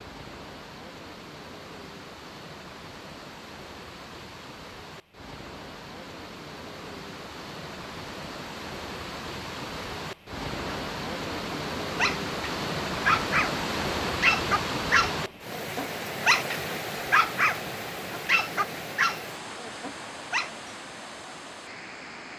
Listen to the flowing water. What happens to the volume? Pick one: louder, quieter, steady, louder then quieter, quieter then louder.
louder then quieter.